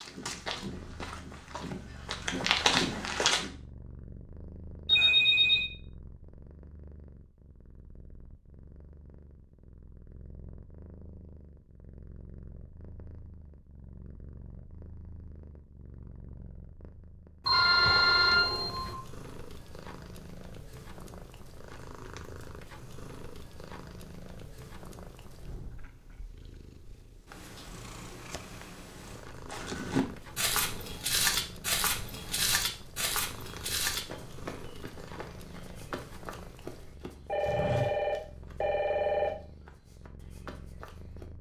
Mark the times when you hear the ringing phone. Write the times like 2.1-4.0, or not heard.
4.8-5.7, 17.4-18.9, 37.2-39.3.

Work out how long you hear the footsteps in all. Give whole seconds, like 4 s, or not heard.
15 s.